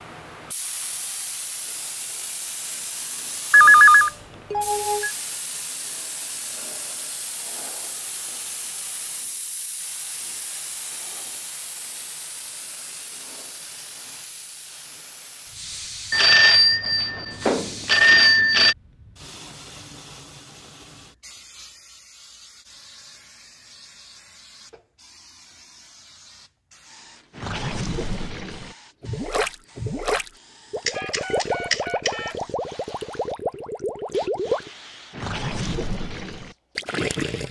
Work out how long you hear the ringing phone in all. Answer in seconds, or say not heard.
6 s.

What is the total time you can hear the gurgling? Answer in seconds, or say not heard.
10 s.